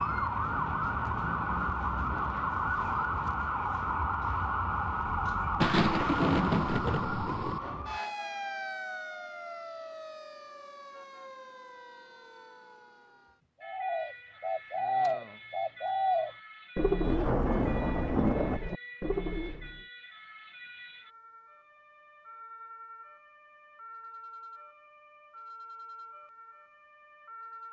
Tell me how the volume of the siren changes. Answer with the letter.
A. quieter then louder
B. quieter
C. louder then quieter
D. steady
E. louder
B.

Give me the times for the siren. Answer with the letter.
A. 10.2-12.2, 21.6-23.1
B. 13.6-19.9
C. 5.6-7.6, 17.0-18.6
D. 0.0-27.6
D.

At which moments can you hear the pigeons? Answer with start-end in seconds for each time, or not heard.
13.6-19.9.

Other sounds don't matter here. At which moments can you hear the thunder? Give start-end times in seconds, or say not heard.
5.6-7.6, 17.0-18.6.